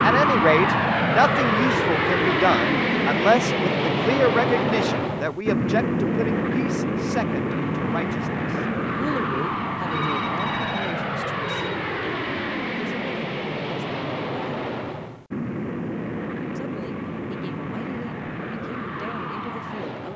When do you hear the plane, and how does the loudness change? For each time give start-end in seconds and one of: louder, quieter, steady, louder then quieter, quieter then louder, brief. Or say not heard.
0.0-20.1 quieter.